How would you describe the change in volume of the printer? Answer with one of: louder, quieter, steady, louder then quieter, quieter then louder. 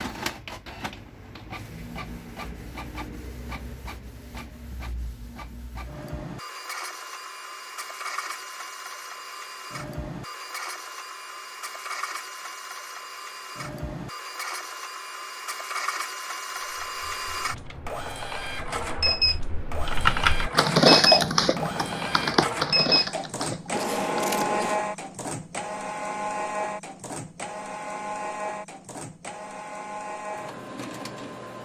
louder then quieter.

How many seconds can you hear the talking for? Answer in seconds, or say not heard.
not heard.